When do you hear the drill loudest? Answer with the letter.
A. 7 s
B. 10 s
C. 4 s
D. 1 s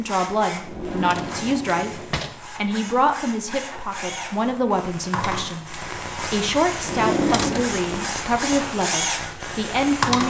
B.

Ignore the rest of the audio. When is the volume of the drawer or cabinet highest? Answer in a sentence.
The volume of the drawer or cabinet peaks at 7 seconds.